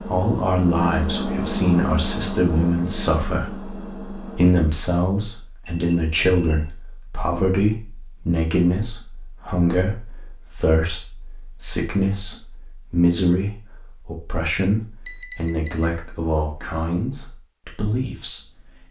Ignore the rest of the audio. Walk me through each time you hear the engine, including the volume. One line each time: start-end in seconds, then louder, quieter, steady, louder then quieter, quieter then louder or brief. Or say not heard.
0.0-4.4 quieter.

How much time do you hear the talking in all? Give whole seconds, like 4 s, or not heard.
19 s.